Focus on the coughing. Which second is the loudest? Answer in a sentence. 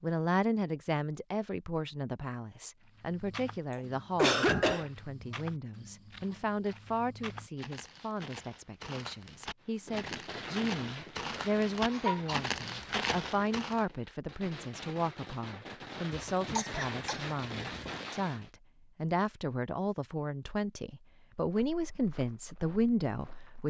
The loudest moment of the coughing is at 4 seconds.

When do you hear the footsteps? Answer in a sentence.
You can hear the footsteps from 2.8 to 13.8 s and from 21.2 to 23.6 s.